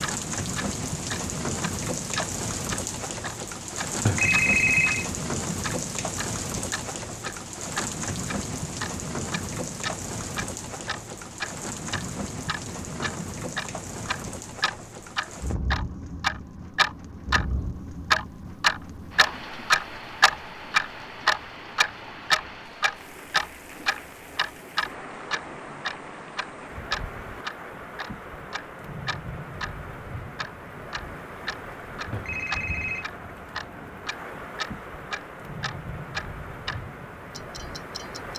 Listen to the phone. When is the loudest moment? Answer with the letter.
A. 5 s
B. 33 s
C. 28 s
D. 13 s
A.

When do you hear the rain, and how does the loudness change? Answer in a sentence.
The rain can be heard from 0.0 to 38.3 s, getting quieter.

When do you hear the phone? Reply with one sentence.
The phone can be heard from 4.0 to 5.1 s and from 32.1 to 33.0 s.